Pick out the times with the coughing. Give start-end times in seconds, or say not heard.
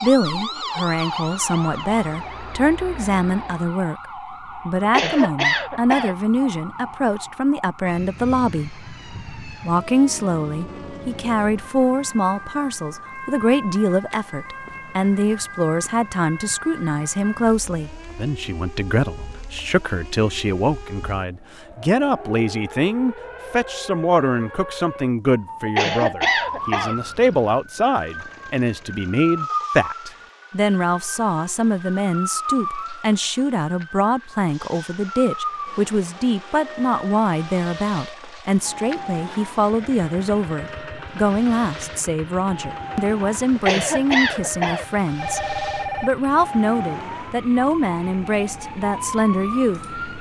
4.8-6.2, 25.6-26.9, 43.5-44.9.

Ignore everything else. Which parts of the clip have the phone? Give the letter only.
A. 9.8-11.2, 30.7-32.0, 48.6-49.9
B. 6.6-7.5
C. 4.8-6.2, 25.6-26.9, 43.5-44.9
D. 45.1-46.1
D.